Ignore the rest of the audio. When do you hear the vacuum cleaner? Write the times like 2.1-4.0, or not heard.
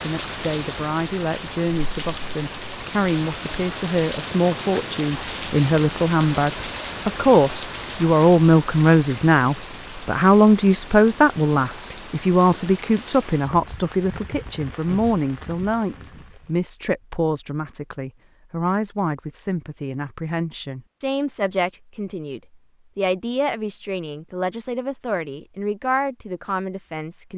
not heard.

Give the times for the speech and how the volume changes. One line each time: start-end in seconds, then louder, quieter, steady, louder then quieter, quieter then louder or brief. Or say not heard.
0.0-27.3 louder then quieter.